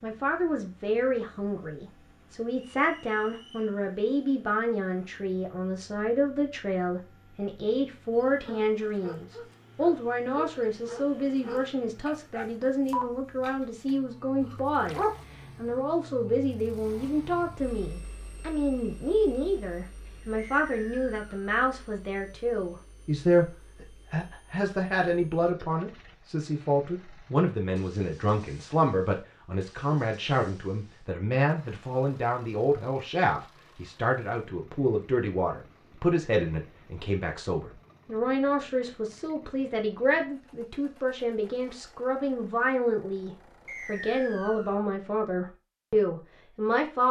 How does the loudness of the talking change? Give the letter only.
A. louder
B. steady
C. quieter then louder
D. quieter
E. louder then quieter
B.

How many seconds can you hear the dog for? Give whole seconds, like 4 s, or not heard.
7 s.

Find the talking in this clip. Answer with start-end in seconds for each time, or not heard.
0.0-47.0.